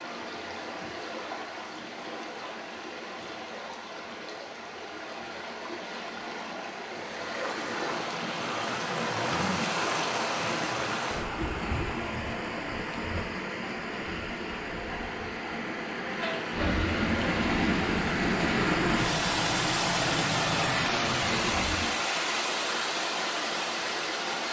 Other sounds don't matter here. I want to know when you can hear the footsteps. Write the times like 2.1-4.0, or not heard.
not heard.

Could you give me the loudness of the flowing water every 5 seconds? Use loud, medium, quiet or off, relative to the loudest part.
medium, loud, loud, loud, loud.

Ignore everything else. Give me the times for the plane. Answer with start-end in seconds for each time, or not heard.
16.5-21.9.